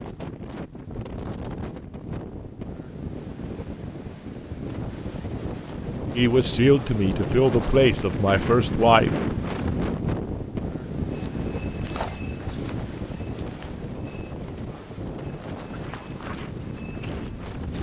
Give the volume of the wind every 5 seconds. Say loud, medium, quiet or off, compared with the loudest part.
medium, loud, loud, medium.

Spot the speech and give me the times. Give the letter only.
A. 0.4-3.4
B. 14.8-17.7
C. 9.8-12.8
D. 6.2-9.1
D.